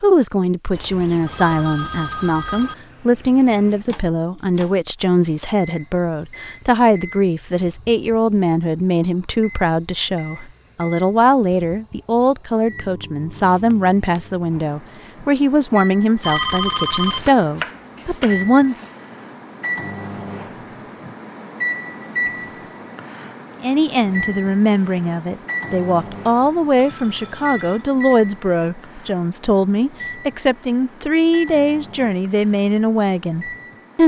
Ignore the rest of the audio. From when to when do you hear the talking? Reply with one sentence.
You can hear the talking from 0.0 to 18.9 s and from 23.6 to 34.0 s.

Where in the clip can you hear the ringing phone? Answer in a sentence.
You can hear the ringing phone from 0.8 to 2.8 s, from 16.2 to 17.3 s and from 26.8 to 27.9 s.